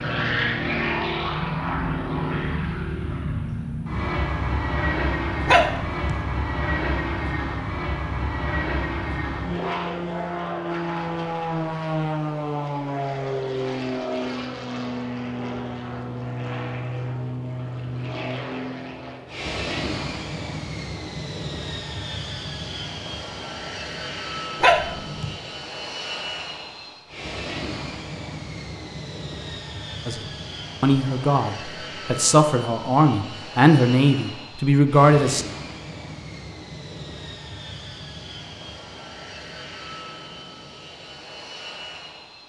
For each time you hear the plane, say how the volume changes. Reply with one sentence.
You can hear the plane from 0.0 to 42.4 s, getting quieter.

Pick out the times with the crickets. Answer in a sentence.
You can't hear the crickets here.